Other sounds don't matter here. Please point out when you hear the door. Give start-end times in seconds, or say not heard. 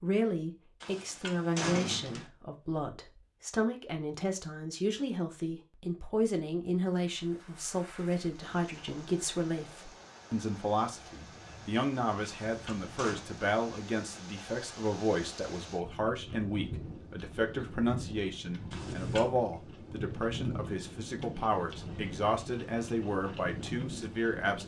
0.8-2.3, 12.4-13.2, 18.7-19.2.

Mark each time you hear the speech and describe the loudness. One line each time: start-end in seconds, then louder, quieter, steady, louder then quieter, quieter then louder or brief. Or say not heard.
0.0-24.6 steady.